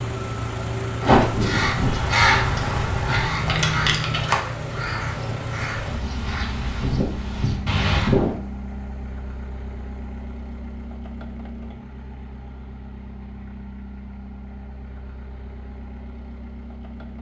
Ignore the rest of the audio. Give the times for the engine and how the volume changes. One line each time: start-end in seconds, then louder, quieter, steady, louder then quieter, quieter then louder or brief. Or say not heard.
0.0-17.1 quieter.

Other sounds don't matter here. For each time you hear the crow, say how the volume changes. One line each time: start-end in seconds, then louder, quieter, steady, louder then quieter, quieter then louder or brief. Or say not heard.
1.0-8.3 quieter then louder.